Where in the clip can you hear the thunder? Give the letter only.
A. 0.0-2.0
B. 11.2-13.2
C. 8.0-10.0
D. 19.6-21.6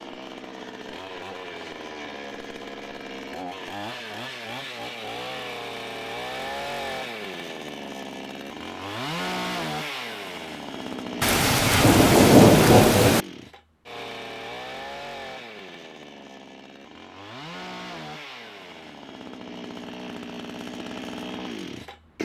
B.